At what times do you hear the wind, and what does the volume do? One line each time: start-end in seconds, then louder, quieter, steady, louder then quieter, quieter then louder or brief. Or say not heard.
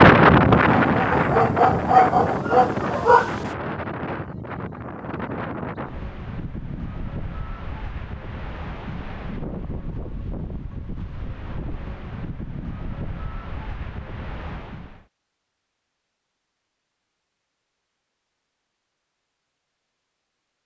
0.0-15.1 quieter.